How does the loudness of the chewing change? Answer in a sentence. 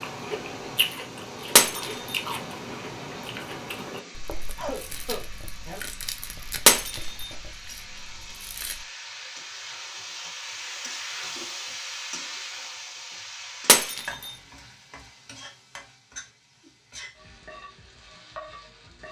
The volume of the chewing goes down.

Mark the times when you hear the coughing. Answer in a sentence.
The coughing can be heard from 3.9 to 5.8 s.